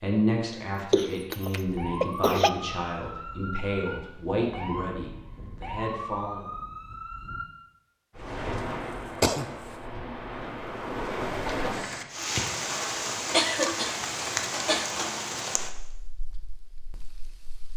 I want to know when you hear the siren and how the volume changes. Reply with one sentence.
The siren can be heard from 1.6 to 7.5 s, at a steady volume.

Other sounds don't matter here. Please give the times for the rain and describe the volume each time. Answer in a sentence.
You can hear the rain from 8.2 to 17.7 s, getting louder then quieter.